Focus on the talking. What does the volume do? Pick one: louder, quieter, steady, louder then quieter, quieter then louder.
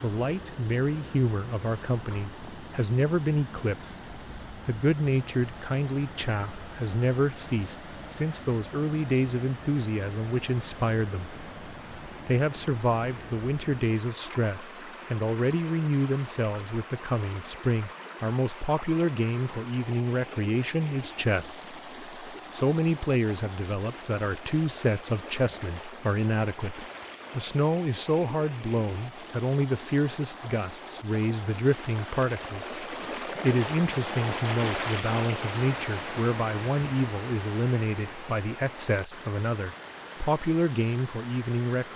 steady.